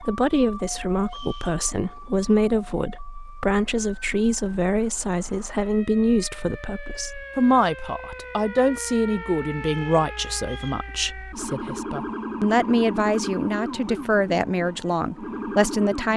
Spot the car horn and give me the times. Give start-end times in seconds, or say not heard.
not heard.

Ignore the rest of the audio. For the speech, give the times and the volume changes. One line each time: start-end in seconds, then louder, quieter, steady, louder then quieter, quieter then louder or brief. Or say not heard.
0.0-16.1 steady.